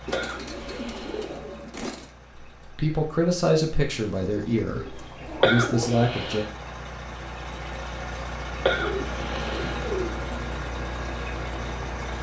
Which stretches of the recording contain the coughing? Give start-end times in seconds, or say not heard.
0.1-1.4, 5.4-6.5, 8.7-9.8.